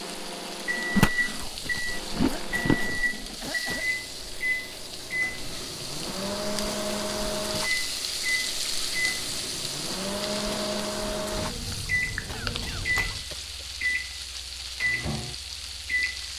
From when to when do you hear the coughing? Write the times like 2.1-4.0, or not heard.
2.2-3.9, 12.2-13.7.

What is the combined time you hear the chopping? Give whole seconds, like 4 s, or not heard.
not heard.